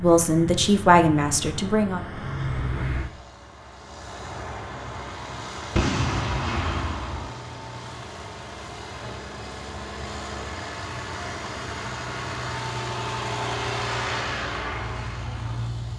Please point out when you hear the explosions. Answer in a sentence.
The explosions can be heard from 5.8 to 7.3 s.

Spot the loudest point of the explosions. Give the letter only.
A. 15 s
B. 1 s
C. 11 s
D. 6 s
D.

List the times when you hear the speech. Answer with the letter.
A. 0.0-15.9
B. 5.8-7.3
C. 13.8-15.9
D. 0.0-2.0
D.